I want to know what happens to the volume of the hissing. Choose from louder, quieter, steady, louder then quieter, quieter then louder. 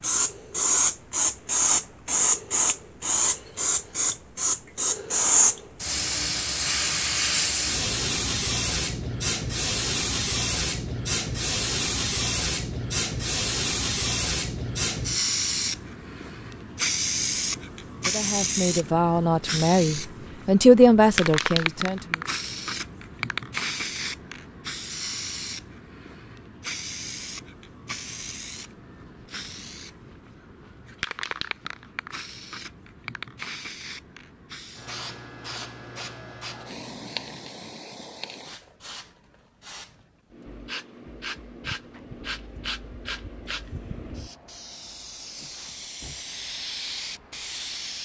quieter.